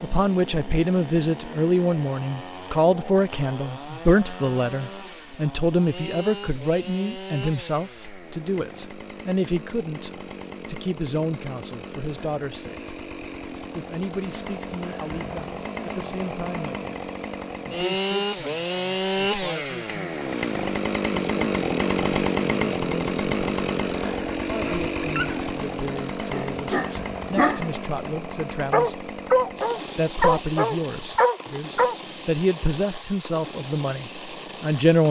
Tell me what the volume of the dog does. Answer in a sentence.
The loudness of the dog goes up.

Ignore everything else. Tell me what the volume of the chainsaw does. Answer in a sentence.
The volume of the chainsaw goes up, then down.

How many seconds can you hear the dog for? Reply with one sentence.
The dog can be heard for 7 seconds in total.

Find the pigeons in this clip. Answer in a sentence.
The pigeons can't be heard in this clip.